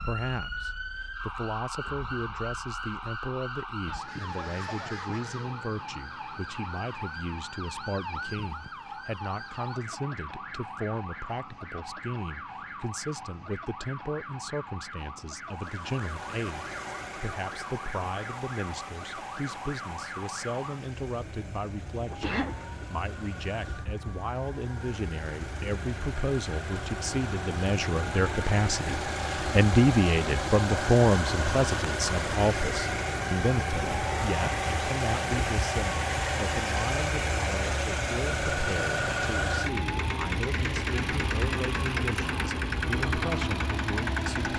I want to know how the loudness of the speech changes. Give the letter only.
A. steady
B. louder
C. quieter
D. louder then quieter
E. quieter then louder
D.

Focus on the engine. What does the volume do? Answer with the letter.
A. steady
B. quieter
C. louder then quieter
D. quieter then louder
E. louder
E.